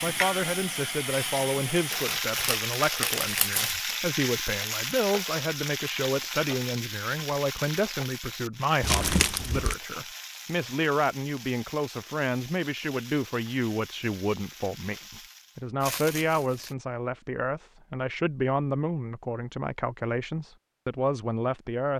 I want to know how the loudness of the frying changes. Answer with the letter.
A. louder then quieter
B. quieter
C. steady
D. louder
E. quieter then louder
B.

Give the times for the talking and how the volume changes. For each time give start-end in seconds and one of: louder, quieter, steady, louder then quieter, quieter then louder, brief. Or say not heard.
0.0-21.9 steady.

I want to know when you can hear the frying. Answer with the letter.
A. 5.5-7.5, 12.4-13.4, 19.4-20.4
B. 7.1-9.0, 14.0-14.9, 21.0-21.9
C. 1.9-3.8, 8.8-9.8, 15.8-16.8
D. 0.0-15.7
D.